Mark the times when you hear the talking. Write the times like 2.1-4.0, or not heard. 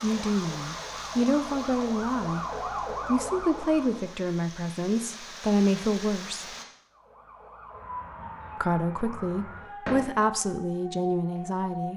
0.0-2.5, 3.0-6.5, 8.6-11.9.